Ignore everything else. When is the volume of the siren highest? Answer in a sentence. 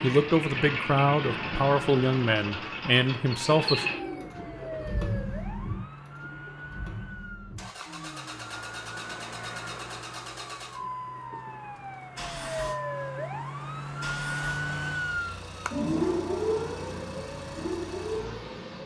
The loudest moment of the siren is at 16 seconds.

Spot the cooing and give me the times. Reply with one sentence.
The cooing can be heard from 3.8 to 5.4 s.